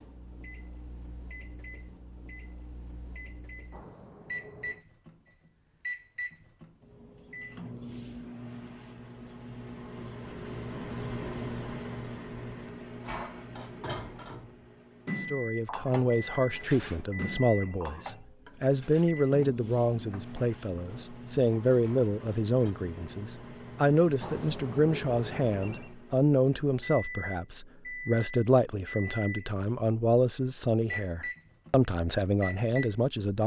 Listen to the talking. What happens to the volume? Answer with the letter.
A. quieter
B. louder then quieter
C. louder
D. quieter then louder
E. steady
E.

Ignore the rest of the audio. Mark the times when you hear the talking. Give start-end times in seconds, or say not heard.
15.3-33.4.